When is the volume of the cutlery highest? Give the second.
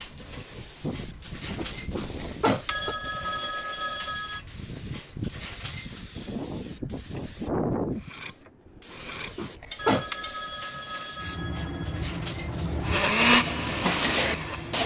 14 s.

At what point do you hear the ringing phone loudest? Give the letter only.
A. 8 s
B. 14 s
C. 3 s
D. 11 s
C.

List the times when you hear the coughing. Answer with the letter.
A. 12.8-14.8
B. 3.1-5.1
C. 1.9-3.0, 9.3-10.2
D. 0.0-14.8
C.